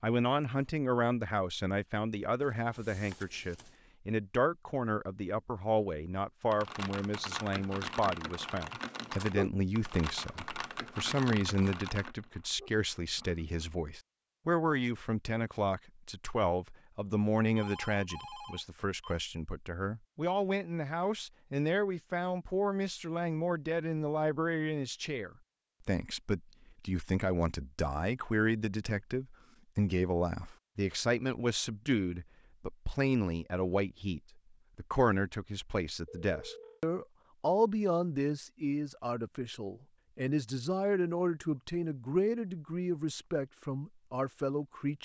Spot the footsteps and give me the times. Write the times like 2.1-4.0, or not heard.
not heard.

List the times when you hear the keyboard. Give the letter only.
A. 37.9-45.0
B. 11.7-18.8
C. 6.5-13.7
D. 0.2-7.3
C.